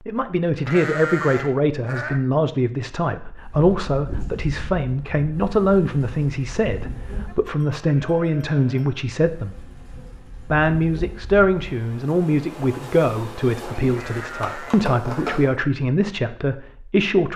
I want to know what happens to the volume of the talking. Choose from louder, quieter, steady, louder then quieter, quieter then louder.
steady.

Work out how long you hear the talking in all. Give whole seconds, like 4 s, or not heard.
16 s.